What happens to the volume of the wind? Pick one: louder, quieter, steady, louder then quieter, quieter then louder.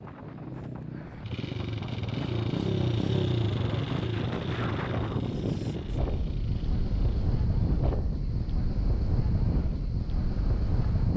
louder.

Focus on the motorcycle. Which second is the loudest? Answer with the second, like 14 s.
3 s.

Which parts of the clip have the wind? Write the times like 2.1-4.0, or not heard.
0.0-11.1.